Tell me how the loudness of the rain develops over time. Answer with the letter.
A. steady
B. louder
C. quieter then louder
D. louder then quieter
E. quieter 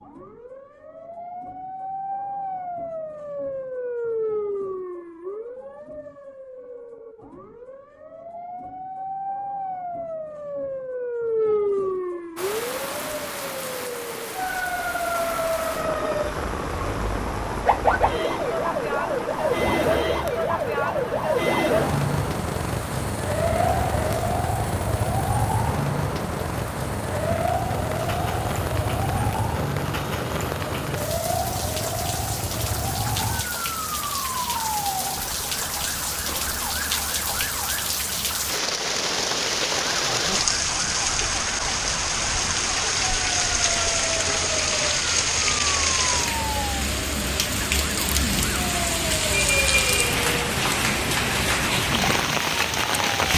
B.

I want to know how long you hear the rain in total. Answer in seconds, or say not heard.
41 s.